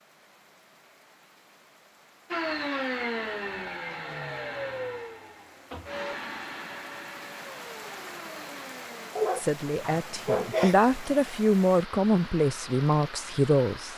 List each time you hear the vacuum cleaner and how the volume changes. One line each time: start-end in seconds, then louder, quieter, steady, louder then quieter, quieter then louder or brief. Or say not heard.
2.3-9.2 quieter.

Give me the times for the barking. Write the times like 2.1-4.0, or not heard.
9.2-10.8.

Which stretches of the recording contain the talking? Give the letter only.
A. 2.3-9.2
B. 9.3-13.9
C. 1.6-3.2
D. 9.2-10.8
B.